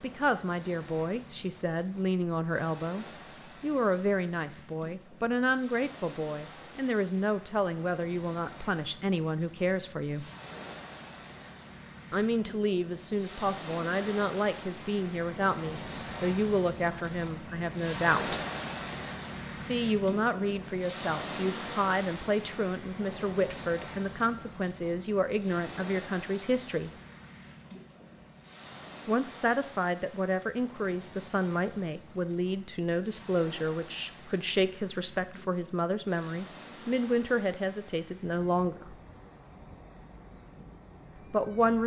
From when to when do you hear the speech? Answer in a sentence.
The speech can be heard from 0.0 to 10.2 s, from 12.1 to 18.4 s, from 19.6 to 26.9 s, from 29.1 to 39.0 s and from 41.3 to 41.8 s.